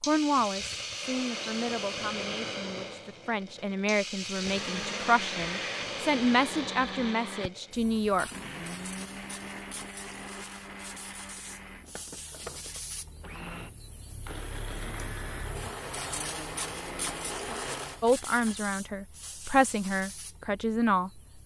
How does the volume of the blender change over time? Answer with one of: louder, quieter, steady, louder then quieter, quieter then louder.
quieter then louder.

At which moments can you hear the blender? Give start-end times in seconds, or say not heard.
4.3-18.1.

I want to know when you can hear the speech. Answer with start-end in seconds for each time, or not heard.
0.1-8.3, 18.0-21.2.